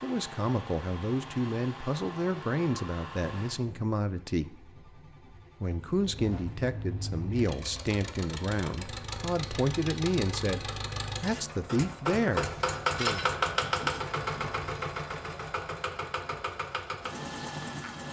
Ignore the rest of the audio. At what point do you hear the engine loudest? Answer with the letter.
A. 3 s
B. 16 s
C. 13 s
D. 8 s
C.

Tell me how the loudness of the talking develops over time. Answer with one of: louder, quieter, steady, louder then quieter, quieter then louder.
steady.